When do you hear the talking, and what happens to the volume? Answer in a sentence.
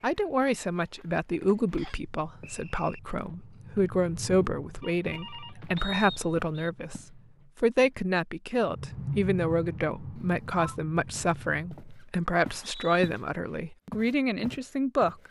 You can hear the talking from 0.0 to 15.2 s, at a steady volume.